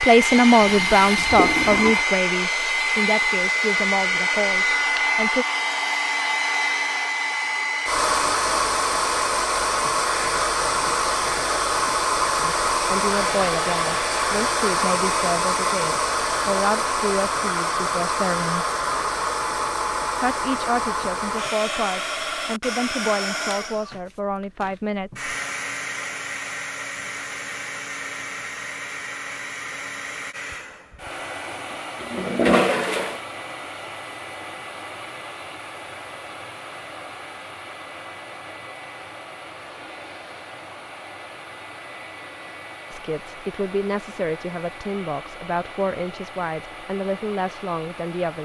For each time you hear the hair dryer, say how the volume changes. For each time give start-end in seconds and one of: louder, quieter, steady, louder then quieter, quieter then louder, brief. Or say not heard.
0.0-48.4 quieter.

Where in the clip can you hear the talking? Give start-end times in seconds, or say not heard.
0.0-5.5, 12.4-18.6, 20.2-25.3, 42.9-48.4.